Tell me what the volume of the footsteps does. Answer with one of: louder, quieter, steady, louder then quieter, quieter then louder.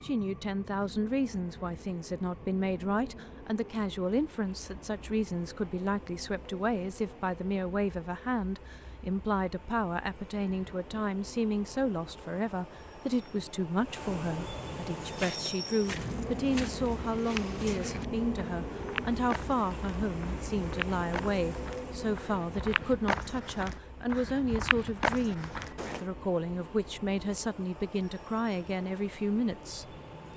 louder.